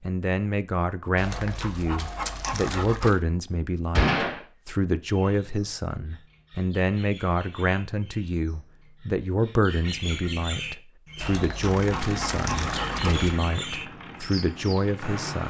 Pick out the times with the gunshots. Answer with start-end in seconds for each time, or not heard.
4.0-4.4.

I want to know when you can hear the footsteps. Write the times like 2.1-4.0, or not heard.
not heard.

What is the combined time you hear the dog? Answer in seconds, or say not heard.
4 s.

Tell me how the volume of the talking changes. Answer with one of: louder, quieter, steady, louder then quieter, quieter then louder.
steady.